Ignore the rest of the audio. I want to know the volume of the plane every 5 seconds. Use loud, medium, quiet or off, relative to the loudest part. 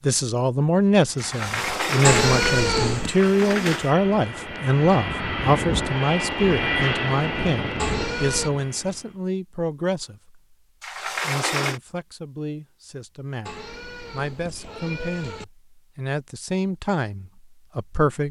medium, loud, off, off.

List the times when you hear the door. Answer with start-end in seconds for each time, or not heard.
1.1-4.0, 10.8-11.8.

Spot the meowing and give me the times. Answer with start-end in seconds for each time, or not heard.
2.0-3.1, 7.8-8.5, 13.4-15.4.